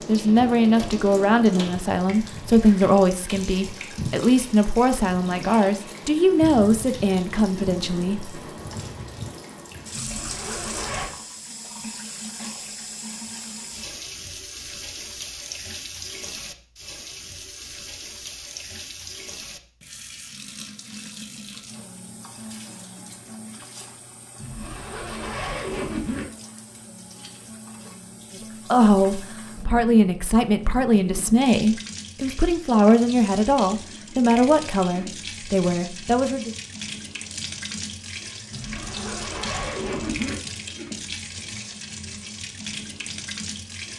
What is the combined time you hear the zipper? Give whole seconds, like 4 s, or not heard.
5 s.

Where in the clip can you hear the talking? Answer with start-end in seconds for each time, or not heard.
0.1-8.8, 28.7-36.5.